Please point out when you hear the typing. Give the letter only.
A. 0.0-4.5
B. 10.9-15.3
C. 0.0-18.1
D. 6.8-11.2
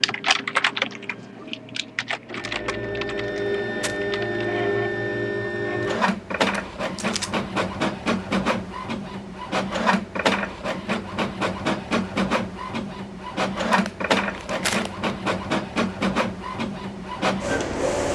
A.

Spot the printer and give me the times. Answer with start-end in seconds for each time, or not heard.
0.0-18.1.